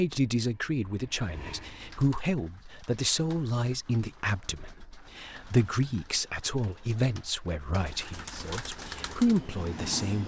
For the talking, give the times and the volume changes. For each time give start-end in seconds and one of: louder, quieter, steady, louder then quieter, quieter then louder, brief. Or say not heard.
0.0-10.2 steady.